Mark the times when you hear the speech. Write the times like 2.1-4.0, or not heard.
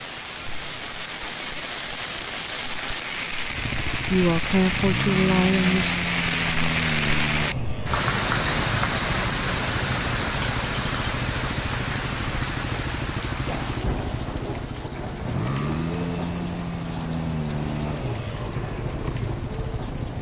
4.0-6.0.